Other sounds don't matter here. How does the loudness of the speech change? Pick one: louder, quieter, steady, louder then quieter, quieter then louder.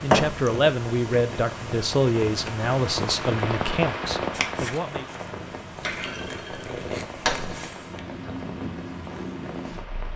quieter.